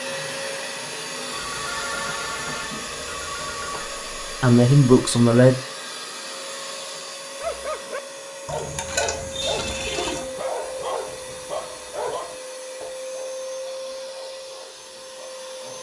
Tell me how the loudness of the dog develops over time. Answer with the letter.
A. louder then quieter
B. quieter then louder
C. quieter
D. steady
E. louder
C.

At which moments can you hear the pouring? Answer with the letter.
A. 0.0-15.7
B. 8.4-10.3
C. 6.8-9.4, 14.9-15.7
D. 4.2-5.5
B.